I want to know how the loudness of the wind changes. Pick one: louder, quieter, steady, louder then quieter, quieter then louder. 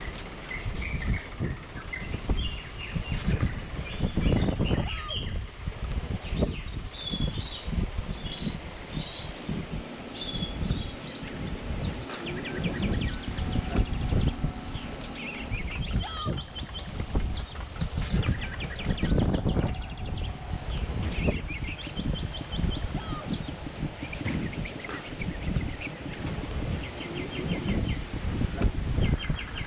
steady.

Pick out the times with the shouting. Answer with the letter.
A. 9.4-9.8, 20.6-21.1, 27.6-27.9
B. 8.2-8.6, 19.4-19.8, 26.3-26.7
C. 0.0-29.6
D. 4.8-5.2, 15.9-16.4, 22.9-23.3
D.